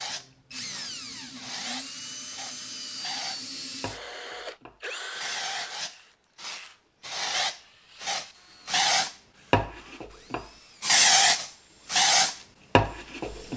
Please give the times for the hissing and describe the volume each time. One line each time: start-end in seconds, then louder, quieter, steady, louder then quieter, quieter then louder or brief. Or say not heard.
0.0-13.5 louder.